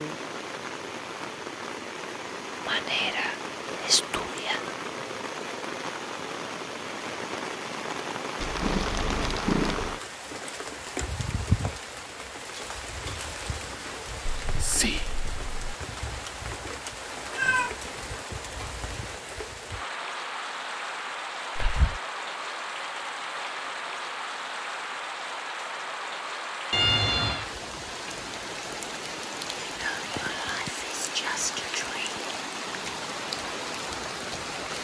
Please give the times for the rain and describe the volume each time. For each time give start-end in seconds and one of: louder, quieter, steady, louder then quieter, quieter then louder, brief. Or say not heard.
0.0-34.7 steady.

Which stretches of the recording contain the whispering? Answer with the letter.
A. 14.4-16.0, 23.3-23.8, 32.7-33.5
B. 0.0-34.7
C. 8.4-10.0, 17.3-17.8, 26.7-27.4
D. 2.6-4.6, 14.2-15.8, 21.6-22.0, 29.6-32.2
D.